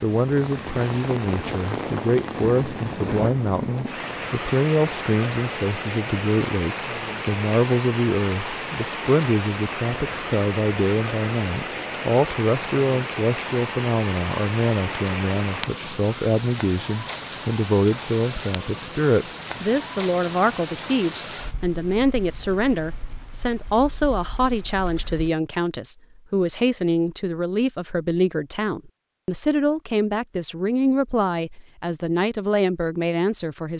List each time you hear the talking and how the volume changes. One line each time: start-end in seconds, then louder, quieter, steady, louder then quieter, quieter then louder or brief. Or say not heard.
0.0-33.7 steady.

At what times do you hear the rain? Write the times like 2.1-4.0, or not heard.
0.0-25.3.